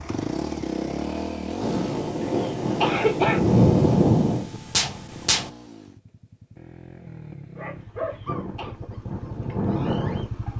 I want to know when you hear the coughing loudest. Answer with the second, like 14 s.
3 s.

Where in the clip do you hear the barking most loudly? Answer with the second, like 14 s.
10 s.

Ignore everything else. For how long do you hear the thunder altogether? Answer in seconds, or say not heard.
4 s.